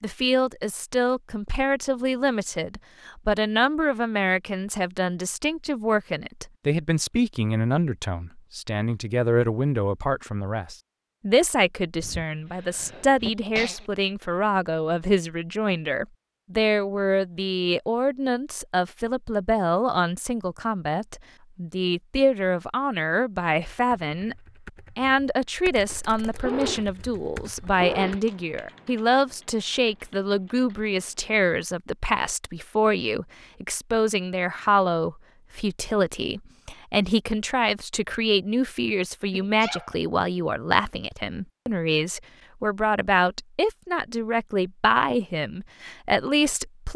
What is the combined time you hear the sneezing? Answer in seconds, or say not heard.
4 s.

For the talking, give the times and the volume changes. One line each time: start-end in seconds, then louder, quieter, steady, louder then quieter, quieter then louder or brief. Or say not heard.
0.0-24.4 steady
24.9-46.9 steady.